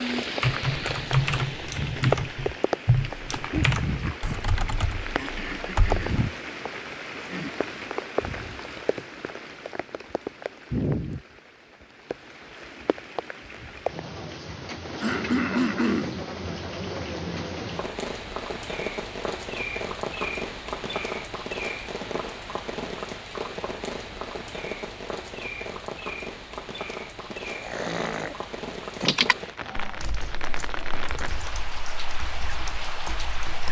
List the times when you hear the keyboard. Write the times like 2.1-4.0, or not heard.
0.4-6.0, 29.1-33.6.